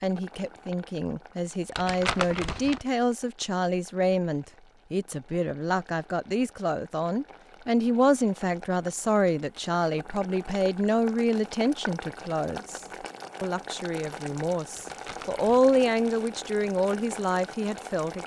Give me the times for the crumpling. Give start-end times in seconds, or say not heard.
1.8-2.8, 14.8-15.6.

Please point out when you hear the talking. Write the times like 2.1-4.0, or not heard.
0.0-18.2.